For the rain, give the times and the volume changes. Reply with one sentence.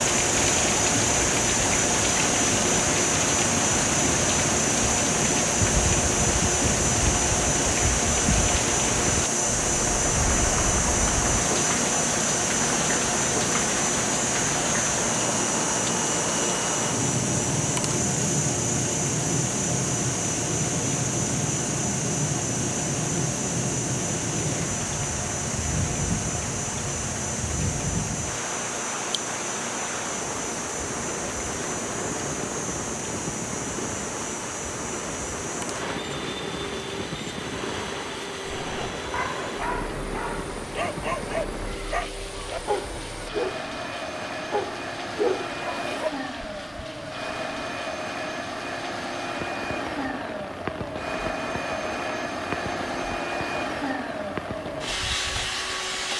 The rain can be heard from 0.0 to 56.1 s, getting quieter.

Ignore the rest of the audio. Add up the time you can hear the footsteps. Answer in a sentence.
The footsteps can't be heard in this clip.